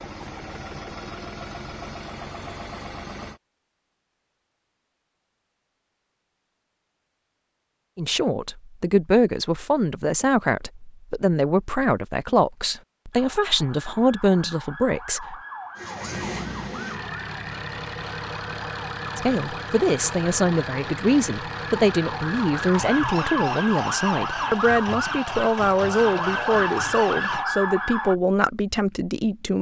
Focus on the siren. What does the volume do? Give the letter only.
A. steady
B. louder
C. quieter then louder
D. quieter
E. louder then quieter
B.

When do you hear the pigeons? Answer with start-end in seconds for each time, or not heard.
not heard.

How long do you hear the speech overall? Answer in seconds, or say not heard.
18 s.